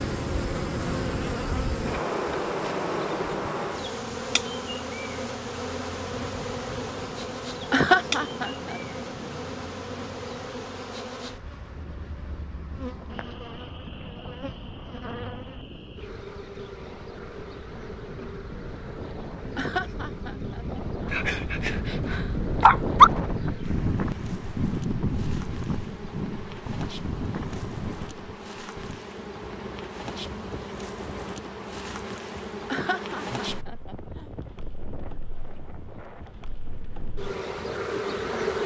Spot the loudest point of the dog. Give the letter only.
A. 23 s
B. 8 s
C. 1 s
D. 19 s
A.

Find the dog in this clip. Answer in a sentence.
The dog can be heard from 21.1 to 23.1 s.